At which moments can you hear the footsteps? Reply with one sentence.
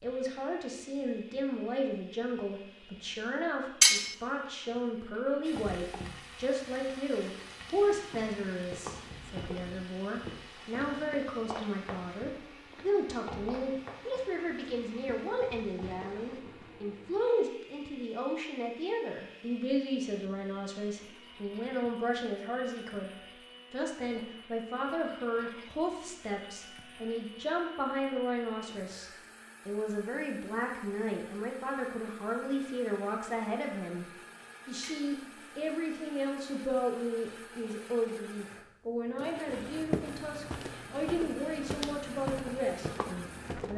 You can hear the footsteps from 7.7 to 16.8 s and from 39.5 to 43.7 s.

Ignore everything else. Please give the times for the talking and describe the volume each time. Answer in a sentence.
You can hear the talking from 0.0 to 23.1 s, at a steady volume; and from 23.7 to 43.7 s, at a steady volume.